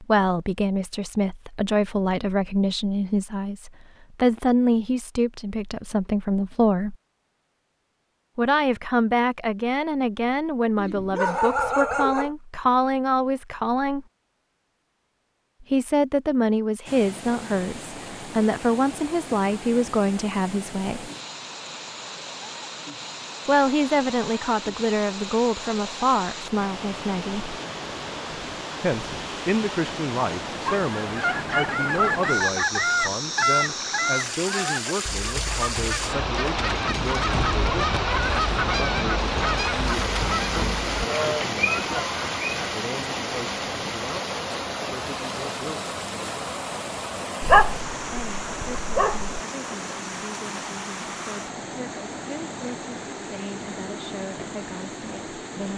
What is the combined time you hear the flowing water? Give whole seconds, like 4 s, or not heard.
39 s.